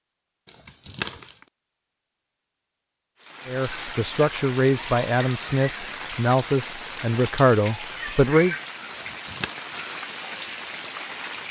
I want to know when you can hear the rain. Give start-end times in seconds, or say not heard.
3.2-11.4.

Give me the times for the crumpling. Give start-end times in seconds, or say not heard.
0.5-1.4, 8.9-9.5.